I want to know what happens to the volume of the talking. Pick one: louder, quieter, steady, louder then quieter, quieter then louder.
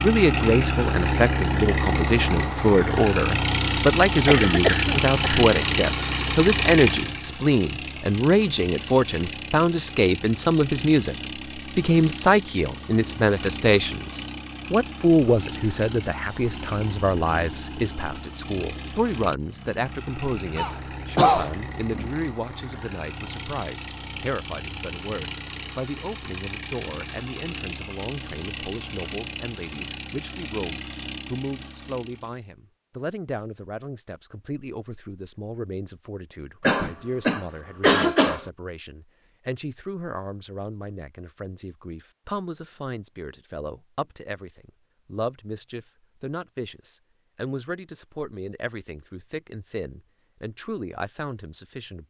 quieter.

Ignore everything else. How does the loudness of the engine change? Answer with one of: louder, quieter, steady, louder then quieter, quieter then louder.
quieter.